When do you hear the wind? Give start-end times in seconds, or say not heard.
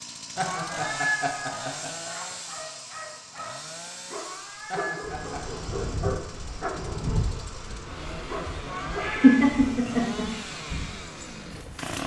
5.0-11.9.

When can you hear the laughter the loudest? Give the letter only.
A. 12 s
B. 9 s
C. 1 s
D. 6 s
B.